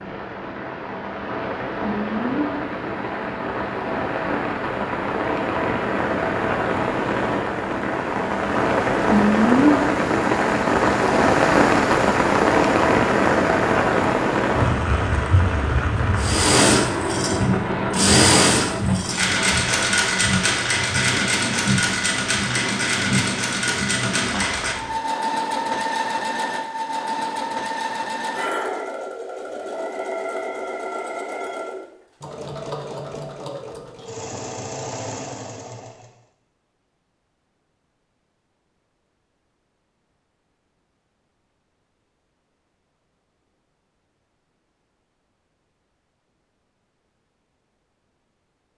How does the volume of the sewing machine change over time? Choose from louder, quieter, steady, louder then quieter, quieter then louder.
quieter.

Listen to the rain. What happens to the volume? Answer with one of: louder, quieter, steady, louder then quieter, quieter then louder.
louder then quieter.